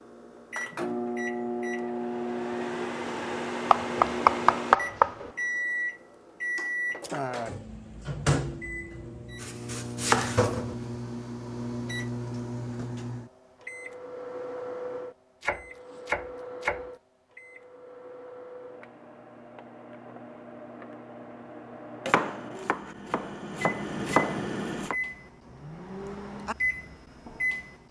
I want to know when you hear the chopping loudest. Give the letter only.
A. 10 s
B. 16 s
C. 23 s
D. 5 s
D.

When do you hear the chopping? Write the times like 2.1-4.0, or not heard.
3.7-5.3, 9.4-10.8, 15.4-16.9, 22.1-24.9.